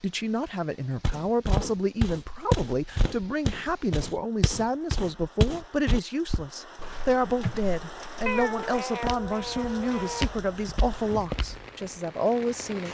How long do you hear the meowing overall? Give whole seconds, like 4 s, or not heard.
2 s.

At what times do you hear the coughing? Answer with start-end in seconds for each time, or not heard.
7.4-8.3.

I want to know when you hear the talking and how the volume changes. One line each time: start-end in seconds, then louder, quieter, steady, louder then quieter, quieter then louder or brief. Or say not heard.
0.0-12.8 steady.